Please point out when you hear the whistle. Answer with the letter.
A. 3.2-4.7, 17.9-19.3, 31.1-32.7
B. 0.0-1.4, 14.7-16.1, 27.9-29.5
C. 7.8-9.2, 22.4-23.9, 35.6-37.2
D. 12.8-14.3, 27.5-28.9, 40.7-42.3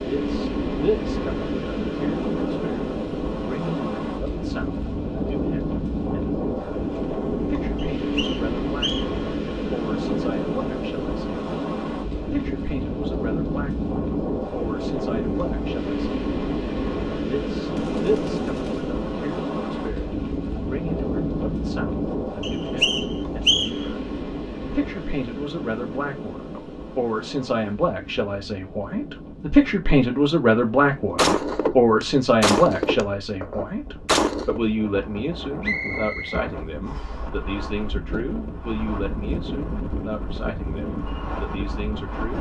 C.